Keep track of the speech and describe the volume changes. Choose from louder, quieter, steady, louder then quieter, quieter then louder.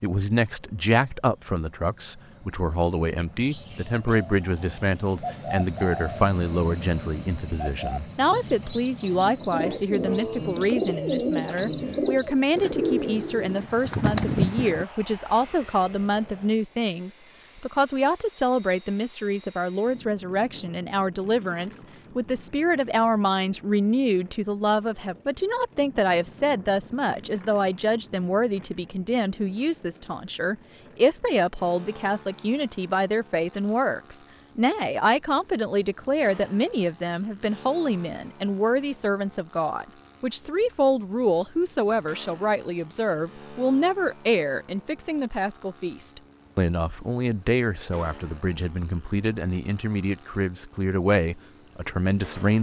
steady.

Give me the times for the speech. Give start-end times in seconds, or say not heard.
0.0-52.5.